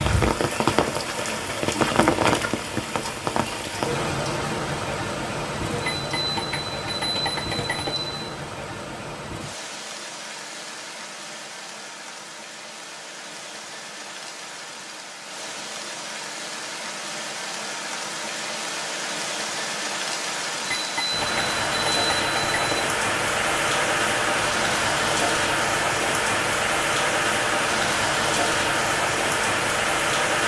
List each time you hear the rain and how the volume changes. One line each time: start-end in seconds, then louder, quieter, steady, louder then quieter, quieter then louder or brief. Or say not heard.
0.0-30.4 quieter then louder.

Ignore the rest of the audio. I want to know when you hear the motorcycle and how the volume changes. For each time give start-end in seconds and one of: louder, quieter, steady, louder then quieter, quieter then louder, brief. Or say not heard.
not heard.